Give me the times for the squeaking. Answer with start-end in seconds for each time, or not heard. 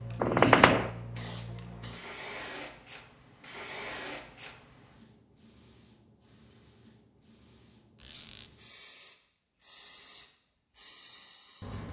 0.2-0.9, 8.0-8.5.